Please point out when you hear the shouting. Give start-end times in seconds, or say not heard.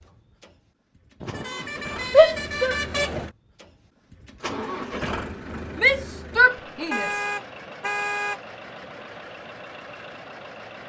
2.1-3.2, 5.8-7.2.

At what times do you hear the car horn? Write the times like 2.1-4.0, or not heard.
1.2-3.3, 6.9-8.4.